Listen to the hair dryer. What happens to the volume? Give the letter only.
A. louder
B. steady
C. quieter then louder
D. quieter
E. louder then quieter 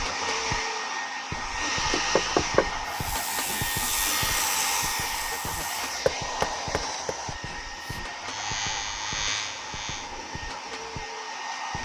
D.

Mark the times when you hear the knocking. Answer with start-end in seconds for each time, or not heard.
1.9-2.8, 6.0-7.2.